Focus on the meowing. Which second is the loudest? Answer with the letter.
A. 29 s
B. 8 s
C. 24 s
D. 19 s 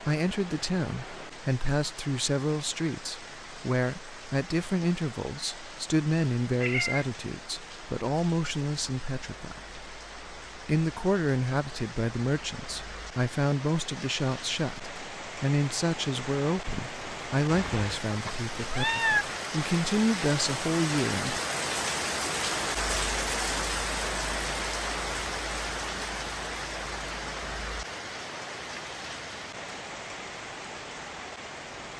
D.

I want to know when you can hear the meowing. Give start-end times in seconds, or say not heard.
6.6-7.0, 18.1-19.2.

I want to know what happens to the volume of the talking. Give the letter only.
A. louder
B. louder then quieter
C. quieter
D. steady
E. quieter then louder
D.